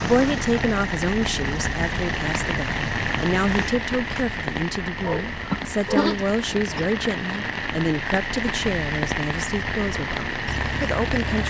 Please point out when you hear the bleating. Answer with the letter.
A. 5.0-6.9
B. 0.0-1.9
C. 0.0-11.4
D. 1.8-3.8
A.